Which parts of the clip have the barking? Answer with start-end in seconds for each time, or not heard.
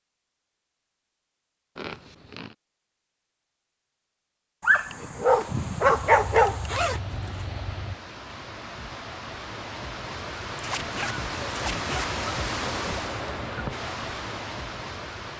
4.6-6.9.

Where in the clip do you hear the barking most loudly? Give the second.
6 s.